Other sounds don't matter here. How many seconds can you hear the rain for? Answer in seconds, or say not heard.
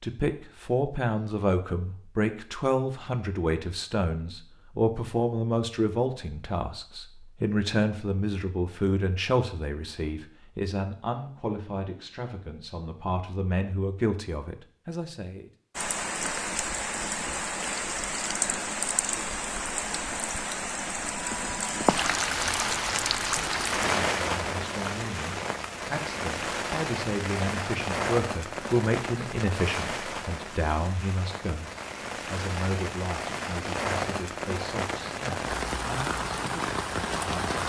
22 s.